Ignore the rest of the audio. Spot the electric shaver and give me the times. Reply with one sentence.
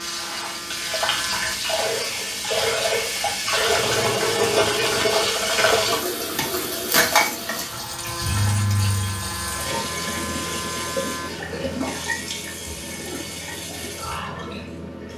The electric shaver can be heard from 0.0 to 1.6 s and from 7.6 to 11.3 s.